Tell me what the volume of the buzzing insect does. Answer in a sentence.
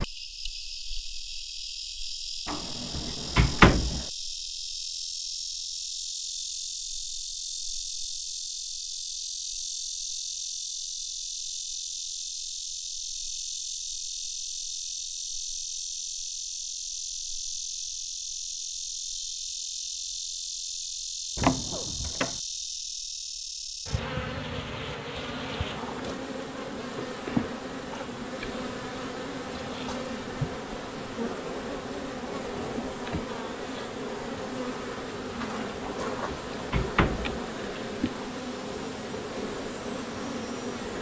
The volume of the buzzing insect stays about the same.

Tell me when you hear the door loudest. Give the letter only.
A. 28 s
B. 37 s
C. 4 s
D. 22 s
C.